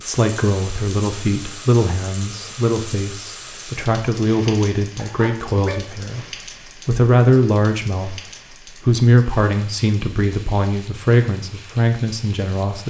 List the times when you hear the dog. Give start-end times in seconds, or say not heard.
5.0-5.9.